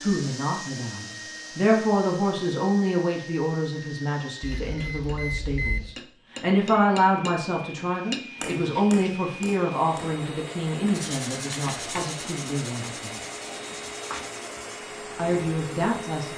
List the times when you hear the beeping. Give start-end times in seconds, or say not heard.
4.4-6.0.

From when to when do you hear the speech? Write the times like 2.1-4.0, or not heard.
0.0-13.2, 15.2-16.3.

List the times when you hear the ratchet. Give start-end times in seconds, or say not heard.
not heard.